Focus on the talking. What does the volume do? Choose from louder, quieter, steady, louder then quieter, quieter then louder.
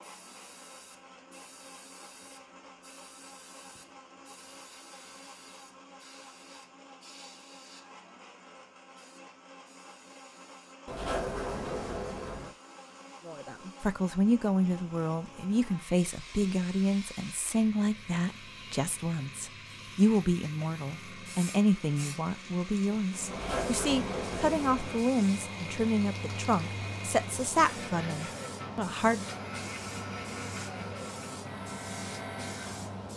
steady.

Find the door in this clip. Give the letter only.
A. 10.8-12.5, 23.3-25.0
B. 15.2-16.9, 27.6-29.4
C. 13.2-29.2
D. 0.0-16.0
A.